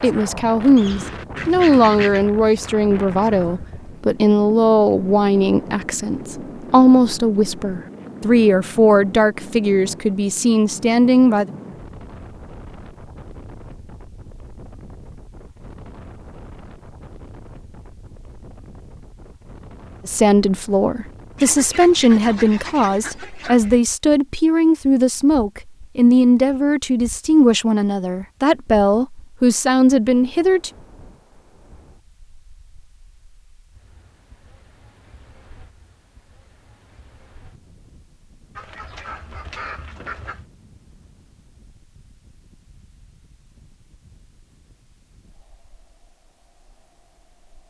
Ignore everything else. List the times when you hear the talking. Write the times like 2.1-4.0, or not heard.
0.0-11.5, 20.1-30.7.